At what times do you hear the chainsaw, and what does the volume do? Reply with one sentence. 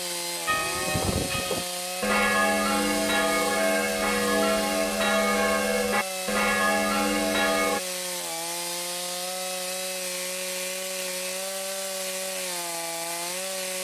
You can hear the chainsaw from 0.0 to 13.7 s, at a steady volume.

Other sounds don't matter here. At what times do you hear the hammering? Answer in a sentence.
You can't hear the hammering here.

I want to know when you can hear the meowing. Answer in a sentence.
The meowing can't be heard in this clip.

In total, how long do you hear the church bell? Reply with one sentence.
The church bell can be heard for 7 seconds in total.